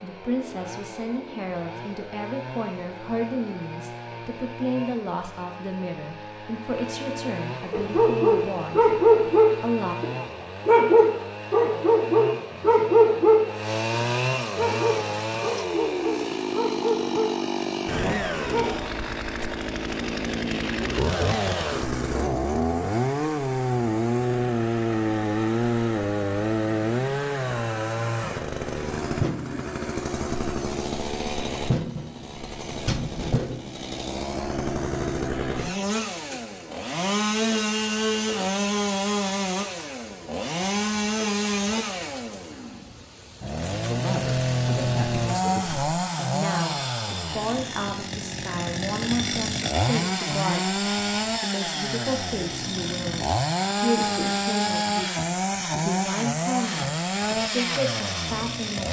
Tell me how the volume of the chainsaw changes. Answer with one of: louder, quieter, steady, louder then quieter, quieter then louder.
louder.